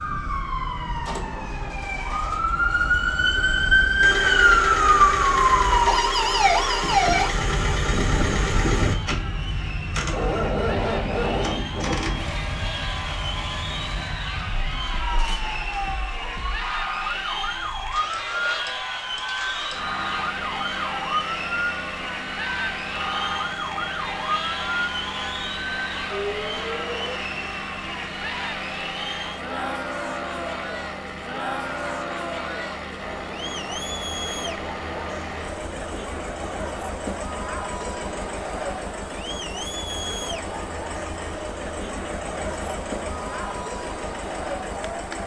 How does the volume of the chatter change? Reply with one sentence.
The loudness of the chatter stays about the same.